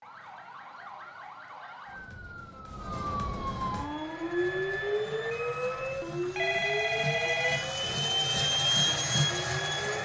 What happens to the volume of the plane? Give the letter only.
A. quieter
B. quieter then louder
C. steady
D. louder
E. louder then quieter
D.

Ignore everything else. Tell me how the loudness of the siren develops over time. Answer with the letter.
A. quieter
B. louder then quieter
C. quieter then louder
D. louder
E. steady
B.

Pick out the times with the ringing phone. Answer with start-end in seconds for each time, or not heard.
6.2-7.9.